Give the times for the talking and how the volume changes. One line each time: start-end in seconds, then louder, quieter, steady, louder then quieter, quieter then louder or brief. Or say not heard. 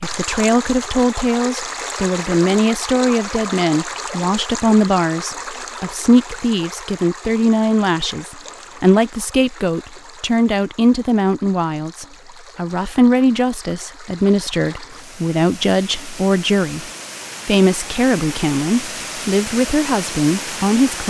0.0-21.0 steady.